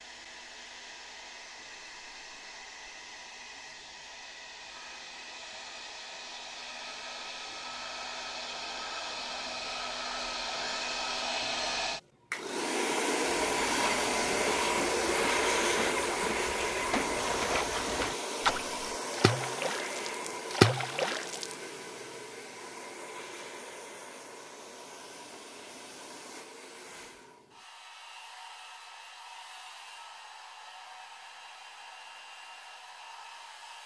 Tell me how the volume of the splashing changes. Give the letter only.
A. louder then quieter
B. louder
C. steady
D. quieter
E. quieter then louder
B.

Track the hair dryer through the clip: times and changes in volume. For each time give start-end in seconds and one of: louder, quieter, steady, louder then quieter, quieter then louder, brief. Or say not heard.
0.0-33.8 louder then quieter.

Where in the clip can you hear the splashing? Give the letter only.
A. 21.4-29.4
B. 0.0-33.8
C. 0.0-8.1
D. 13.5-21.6
D.